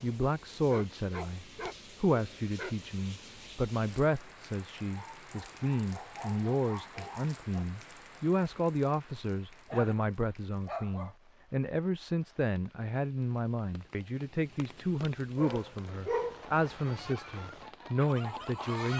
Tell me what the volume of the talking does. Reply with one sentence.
The loudness of the talking stays about the same.